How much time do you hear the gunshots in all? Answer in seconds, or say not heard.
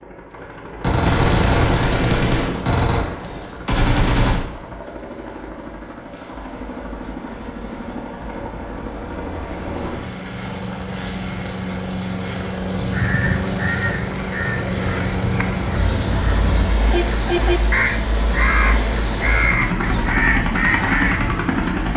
4 s.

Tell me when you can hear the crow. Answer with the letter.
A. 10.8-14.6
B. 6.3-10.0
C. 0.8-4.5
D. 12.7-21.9
D.